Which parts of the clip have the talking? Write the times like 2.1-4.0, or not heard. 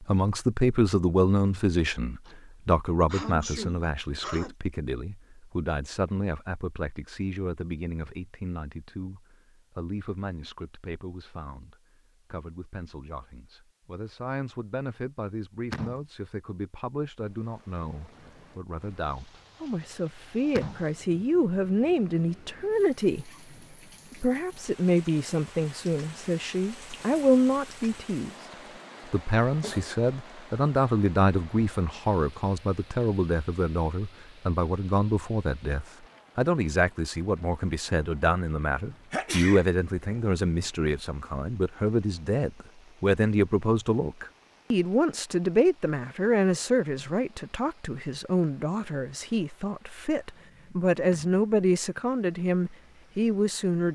0.0-23.3, 24.1-28.4, 29.1-53.9.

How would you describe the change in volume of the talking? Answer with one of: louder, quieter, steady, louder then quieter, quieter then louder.
quieter then louder.